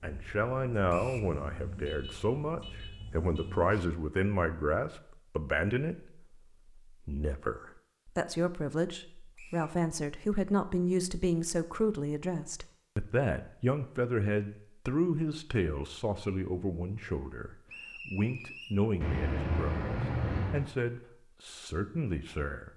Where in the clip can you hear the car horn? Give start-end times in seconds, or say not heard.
1.8-3.5, 19.0-20.7.